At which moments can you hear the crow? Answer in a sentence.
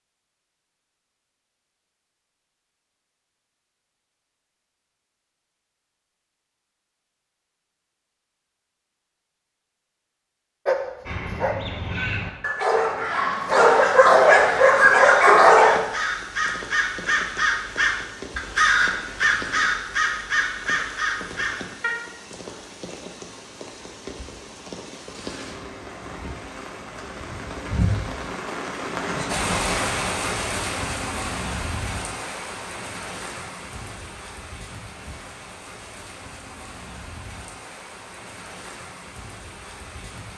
You can hear the crow from 11.1 to 21.9 s.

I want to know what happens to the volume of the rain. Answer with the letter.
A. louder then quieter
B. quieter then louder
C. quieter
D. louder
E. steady
A.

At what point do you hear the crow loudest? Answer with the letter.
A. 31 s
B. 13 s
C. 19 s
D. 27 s
C.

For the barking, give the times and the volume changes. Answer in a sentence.
The barking can be heard from 10.7 to 15.8 s, getting louder.